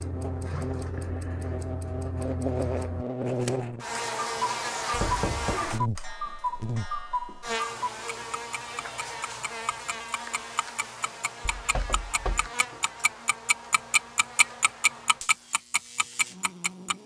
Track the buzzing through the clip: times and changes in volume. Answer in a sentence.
You can hear the buzzing from 0.0 to 17.0 s, getting quieter.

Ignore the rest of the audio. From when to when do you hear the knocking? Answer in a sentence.
You can hear the knocking from 4.9 to 5.7 s and from 11.4 to 12.5 s.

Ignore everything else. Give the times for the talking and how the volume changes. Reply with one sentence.
You can't hear the talking here.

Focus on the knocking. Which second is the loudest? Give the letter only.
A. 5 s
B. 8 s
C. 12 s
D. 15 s
A.